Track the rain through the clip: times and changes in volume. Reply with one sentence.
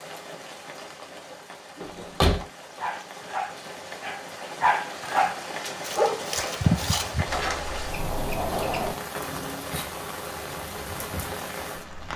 You can hear the rain from 0.0 to 12.1 s, getting louder.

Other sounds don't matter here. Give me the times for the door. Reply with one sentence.
You can hear the door from 1.8 to 2.5 s and from 7.2 to 8.9 s.